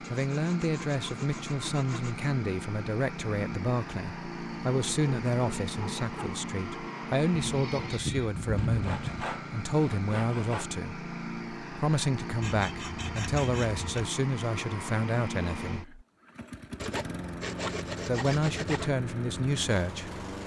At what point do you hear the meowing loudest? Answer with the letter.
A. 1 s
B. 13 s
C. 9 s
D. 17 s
C.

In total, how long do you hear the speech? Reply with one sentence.
You can hear the speech for 18 seconds altogether.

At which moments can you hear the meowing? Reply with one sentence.
The meowing can be heard from 7.5 to 9.2 s.